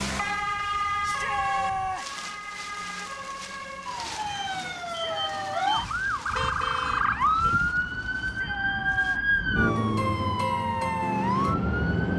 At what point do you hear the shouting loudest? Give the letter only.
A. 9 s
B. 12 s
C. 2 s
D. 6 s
C.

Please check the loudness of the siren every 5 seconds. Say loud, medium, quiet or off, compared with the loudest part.
medium, loud, loud.